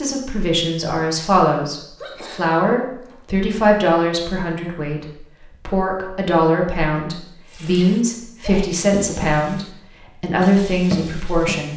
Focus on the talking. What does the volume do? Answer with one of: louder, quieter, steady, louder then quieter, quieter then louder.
steady.